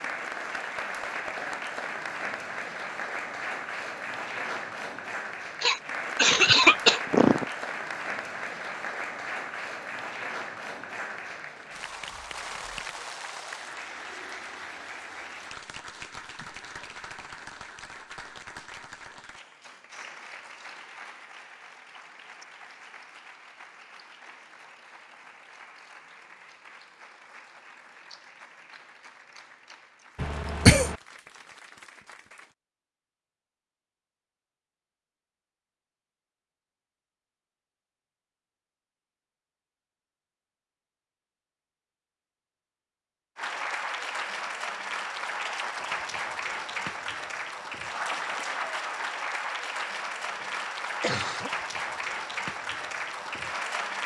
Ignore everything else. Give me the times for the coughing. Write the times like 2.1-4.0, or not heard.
5.6-7.5, 30.1-30.9, 50.2-51.5.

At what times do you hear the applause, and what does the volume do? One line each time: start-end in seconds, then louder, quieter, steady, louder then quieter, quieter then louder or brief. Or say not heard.
0.0-32.5 quieter
43.4-54.0 steady.